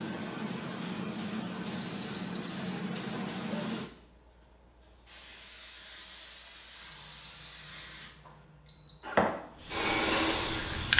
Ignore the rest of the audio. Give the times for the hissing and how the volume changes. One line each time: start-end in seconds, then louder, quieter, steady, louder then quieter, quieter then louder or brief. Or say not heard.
0.0-10.9 quieter then louder.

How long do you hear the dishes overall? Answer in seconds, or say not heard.
not heard.